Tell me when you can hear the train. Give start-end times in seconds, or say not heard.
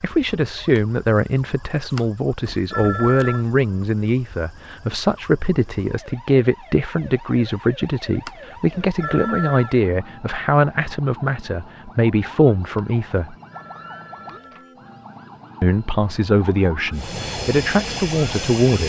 16.9-18.8.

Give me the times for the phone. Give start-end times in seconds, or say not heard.
1.9-3.5, 8.2-9.8, 12.8-14.8.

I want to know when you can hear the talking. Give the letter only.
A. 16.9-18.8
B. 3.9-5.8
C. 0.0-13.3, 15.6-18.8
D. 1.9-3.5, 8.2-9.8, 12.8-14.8
C.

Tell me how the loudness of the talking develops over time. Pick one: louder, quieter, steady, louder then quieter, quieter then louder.
steady.